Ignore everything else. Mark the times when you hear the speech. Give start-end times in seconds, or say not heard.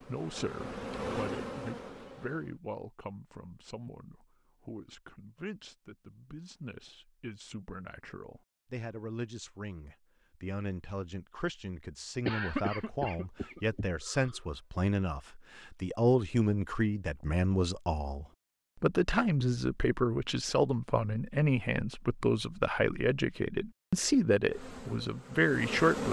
0.1-26.0.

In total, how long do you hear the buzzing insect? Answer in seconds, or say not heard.
4 s.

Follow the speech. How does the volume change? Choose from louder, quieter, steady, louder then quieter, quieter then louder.
louder.